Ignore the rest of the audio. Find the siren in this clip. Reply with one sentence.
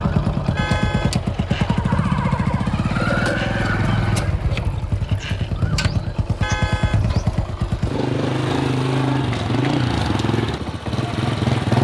You can hear the siren from 0.0 to 6.2 s.